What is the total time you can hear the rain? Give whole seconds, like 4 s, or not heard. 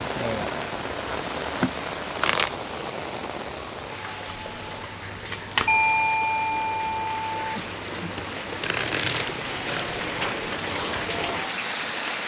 12 s.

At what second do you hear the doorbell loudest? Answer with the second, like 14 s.
6 s.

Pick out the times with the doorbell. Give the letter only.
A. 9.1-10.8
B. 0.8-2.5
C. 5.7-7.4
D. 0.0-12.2
C.